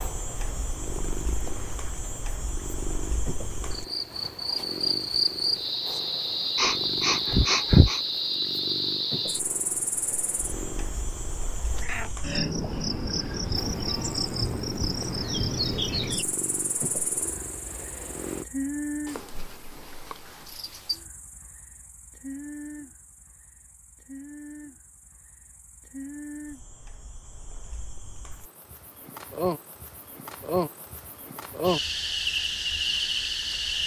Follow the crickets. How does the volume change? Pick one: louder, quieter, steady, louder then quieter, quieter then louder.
quieter then louder.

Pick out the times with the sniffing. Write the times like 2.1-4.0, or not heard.
6.5-8.0.